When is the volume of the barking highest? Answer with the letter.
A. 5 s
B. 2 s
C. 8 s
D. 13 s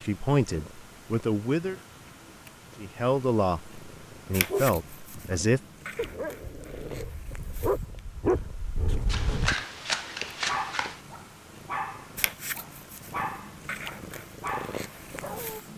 C.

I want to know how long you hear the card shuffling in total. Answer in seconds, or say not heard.
2 s.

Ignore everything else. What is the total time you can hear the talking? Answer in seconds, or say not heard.
5 s.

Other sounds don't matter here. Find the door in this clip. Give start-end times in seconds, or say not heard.
not heard.